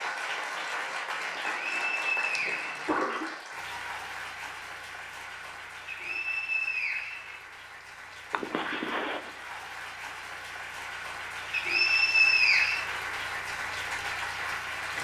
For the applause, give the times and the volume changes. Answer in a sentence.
You can hear the applause from 0.0 to 14.9 s, getting quieter then louder.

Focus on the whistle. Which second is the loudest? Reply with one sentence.
The volume of the whistle peaks at 12 seconds.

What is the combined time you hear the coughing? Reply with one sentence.
You can hear the coughing for 3 seconds altogether.